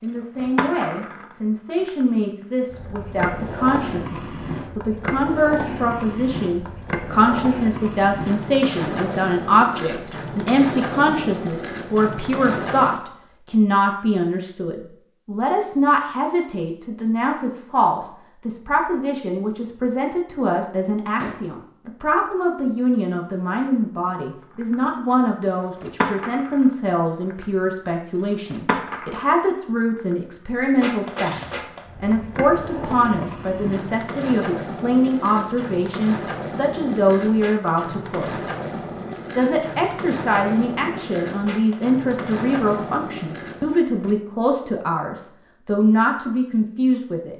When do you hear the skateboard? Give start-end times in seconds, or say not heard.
0.1-13.0, 24.4-44.1.